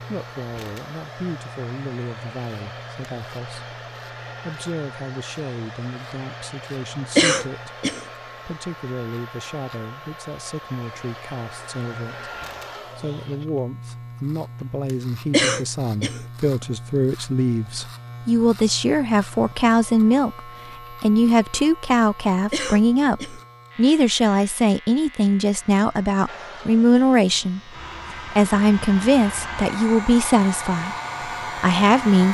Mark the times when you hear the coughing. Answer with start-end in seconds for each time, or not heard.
7.2-8.0, 15.3-16.2, 22.5-23.4.